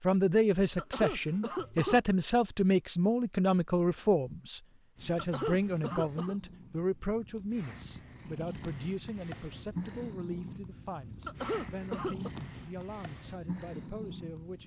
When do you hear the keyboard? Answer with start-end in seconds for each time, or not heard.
not heard.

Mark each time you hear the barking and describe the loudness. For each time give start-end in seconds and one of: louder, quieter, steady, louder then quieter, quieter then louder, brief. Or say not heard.
not heard.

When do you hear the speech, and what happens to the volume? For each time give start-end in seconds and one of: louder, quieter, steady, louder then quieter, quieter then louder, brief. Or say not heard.
0.0-14.6 quieter.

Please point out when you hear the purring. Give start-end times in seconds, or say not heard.
5.0-14.6.